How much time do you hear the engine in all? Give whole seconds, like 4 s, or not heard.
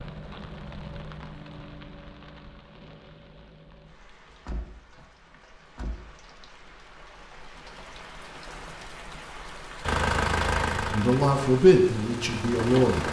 3 s.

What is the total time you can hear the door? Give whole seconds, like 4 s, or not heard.
2 s.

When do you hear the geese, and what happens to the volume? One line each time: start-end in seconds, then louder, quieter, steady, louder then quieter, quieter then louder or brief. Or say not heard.
not heard.